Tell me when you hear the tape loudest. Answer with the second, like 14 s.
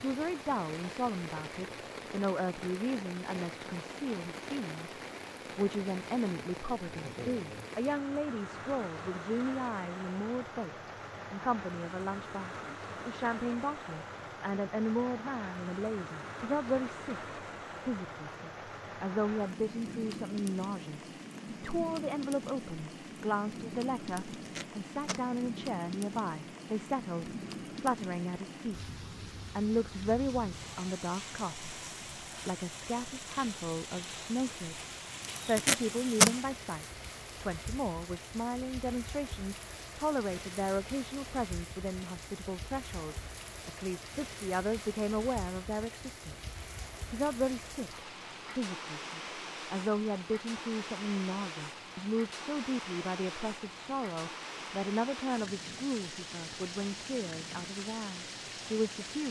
36 s.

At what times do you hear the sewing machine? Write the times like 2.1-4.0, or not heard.
not heard.